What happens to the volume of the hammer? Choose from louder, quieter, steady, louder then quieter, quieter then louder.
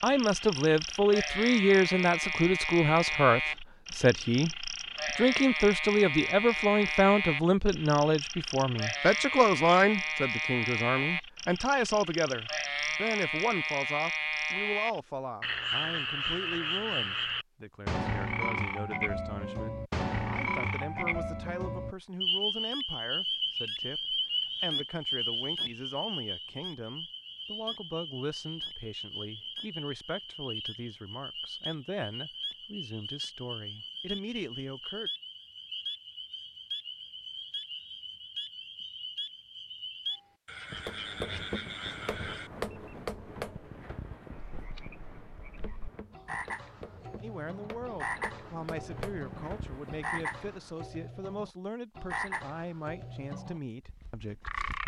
quieter then louder.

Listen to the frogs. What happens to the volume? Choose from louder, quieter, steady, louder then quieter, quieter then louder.
quieter.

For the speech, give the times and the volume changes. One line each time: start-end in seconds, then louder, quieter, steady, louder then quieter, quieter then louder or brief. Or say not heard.
0.0-35.1 quieter
47.2-54.8 steady.